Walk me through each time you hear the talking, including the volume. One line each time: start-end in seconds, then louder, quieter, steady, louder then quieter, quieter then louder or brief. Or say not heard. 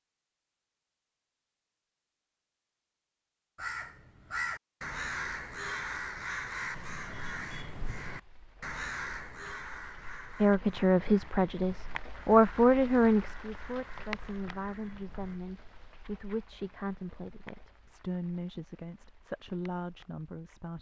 10.4-20.7 quieter.